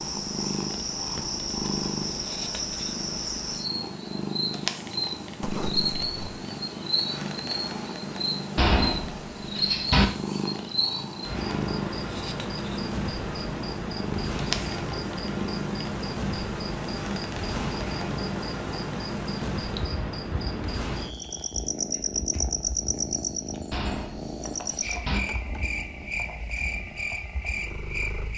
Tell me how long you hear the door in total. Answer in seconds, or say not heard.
3 s.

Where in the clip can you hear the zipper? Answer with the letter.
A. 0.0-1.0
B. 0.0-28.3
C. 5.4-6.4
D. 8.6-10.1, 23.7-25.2
C.